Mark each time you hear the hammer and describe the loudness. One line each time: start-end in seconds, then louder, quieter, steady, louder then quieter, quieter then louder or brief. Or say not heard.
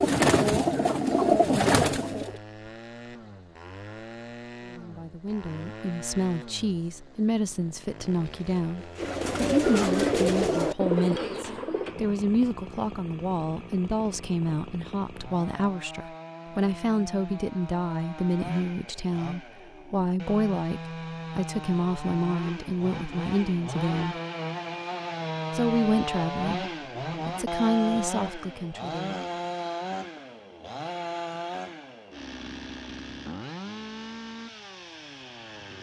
not heard.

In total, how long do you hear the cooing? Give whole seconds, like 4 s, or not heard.
6 s.